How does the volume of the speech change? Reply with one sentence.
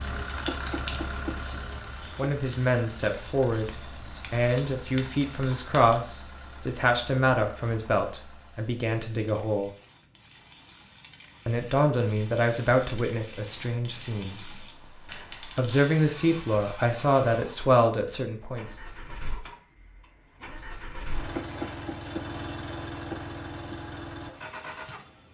The loudness of the speech stays about the same.